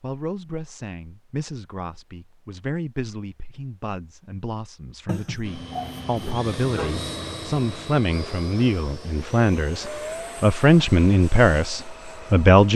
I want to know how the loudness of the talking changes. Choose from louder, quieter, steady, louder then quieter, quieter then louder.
louder.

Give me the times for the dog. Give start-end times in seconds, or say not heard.
5.0-7.0.